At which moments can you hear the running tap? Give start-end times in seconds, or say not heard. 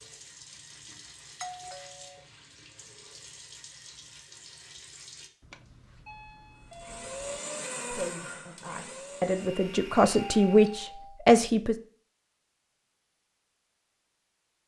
0.0-5.3.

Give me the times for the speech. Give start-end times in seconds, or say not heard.
7.9-11.8.